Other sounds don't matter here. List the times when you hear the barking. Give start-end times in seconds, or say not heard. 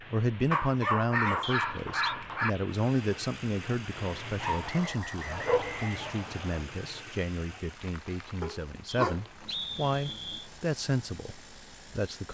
0.5-2.5, 4.4-6.0, 8.4-10.4.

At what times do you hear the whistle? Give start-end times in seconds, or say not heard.
1.4-2.1, 4.6-6.7, 8.8-10.5.